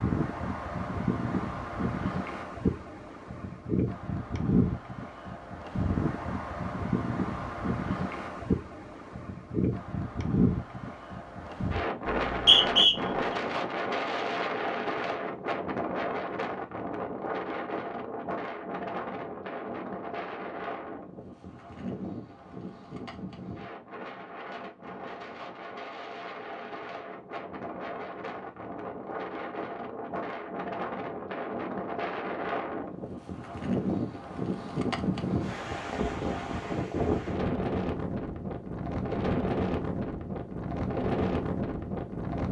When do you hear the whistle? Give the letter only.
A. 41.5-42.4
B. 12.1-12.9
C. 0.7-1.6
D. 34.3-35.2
B.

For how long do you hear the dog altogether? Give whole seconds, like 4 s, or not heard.
not heard.